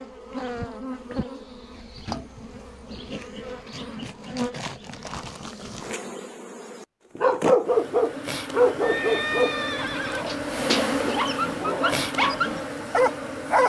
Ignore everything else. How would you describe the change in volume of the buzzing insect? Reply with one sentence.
The loudness of the buzzing insect goes up.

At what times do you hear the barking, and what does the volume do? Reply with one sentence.
The barking can be heard from 7.2 to 13.6 s, getting quieter then louder.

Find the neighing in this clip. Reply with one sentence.
The neighing can be heard from 8.8 to 10.3 s.